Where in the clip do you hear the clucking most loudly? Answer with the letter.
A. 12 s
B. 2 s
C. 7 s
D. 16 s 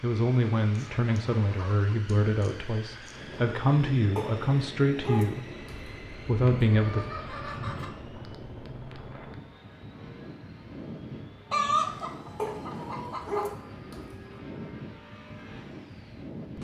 A.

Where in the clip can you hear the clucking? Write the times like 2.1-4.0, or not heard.
0.8-3.4, 6.3-7.9, 11.5-13.5.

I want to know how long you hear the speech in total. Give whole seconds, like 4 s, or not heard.
6 s.